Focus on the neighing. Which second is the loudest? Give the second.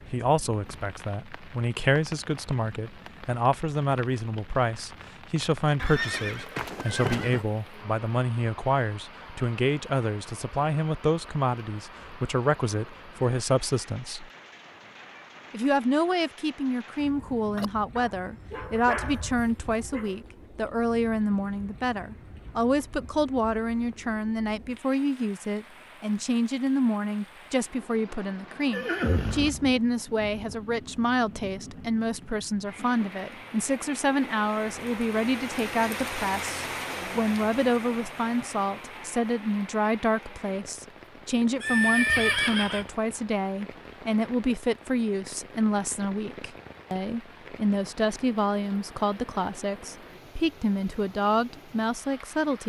42 s.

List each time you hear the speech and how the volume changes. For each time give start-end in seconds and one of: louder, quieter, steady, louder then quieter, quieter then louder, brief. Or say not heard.
0.1-14.3 steady
15.5-52.6 steady.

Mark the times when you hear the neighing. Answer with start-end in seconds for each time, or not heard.
5.8-7.5, 28.7-30.6, 41.6-42.9.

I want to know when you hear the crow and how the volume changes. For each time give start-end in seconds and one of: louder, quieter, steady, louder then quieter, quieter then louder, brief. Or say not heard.
not heard.